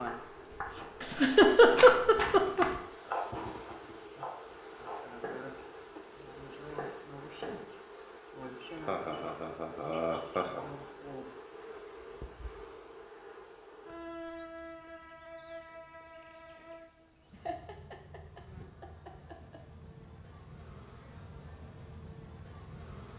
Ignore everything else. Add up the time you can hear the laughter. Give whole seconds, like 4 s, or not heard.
6 s.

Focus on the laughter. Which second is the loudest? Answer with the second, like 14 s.
2 s.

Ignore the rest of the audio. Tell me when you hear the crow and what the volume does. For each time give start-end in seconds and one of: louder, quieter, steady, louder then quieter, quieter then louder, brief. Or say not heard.
not heard.